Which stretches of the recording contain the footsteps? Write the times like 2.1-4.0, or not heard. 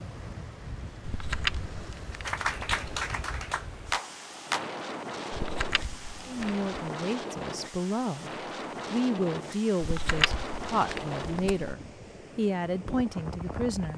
not heard.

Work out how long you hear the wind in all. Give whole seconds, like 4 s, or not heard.
14 s.